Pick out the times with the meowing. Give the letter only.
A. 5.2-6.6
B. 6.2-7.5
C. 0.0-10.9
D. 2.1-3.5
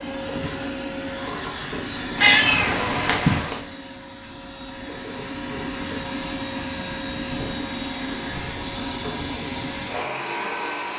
D.